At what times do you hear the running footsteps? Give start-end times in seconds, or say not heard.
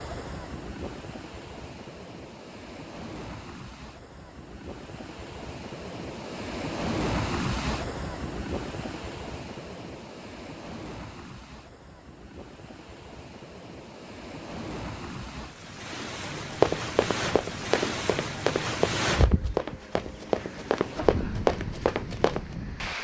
16.4-22.4.